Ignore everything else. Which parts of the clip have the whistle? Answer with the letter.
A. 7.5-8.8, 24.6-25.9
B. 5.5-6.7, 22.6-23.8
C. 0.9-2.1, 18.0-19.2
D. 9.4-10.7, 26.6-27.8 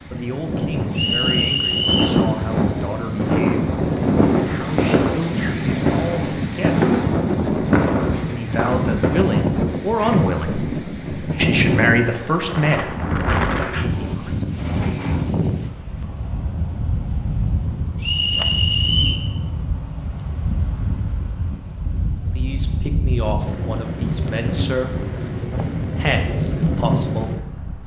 C.